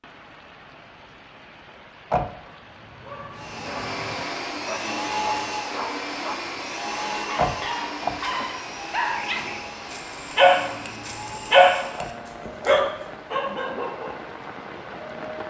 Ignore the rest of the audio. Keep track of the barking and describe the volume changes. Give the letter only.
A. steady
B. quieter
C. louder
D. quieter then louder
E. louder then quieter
E.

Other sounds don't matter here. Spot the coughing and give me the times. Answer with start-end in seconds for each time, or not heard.
not heard.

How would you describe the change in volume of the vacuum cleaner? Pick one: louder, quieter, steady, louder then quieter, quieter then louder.
quieter.